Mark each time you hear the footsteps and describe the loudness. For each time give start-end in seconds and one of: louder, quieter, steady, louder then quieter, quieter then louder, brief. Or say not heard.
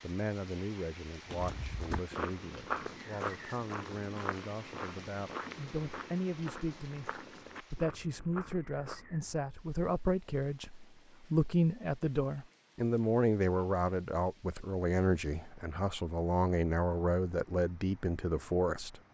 1.3-9.4 quieter.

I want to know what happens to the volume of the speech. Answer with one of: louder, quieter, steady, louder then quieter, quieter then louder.
louder.